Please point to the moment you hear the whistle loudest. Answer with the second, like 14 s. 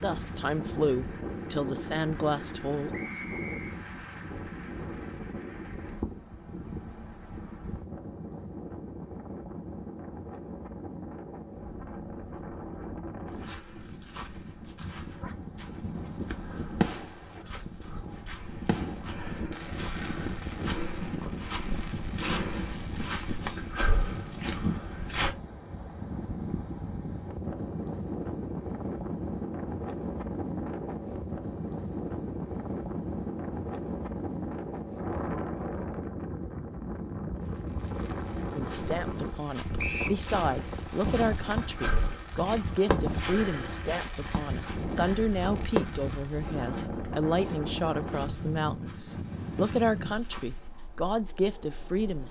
40 s.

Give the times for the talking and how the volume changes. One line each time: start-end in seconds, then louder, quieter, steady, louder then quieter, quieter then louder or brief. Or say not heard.
0.0-2.9 brief
38.5-52.2 steady.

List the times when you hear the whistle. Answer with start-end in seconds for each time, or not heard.
2.9-3.8, 39.8-40.2.